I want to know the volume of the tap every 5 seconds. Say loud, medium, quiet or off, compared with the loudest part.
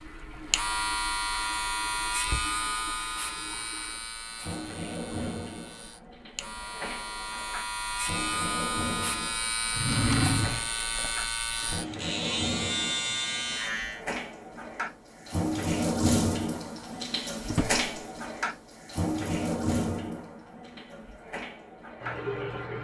quiet, medium, medium, loud, medium.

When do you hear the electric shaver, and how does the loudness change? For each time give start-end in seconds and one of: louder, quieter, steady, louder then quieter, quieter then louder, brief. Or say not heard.
0.0-14.1 quieter then louder.